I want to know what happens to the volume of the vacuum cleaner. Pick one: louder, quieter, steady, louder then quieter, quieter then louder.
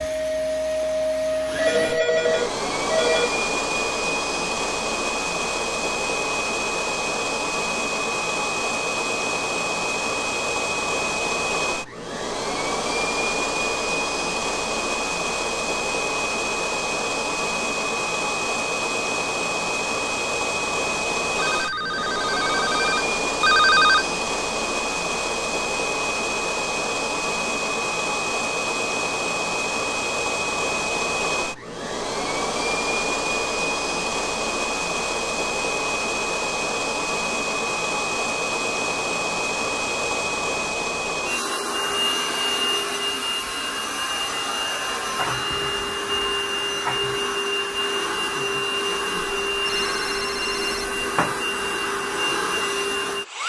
steady.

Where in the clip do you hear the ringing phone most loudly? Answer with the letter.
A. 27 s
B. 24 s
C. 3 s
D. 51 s
B.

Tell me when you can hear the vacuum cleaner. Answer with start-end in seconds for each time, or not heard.
0.0-53.4.